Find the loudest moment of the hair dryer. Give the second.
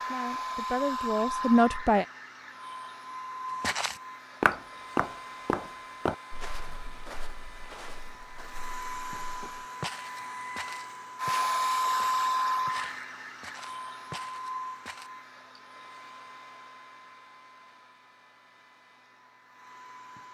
12 s.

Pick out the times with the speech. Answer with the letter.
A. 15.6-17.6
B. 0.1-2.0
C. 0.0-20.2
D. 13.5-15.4
B.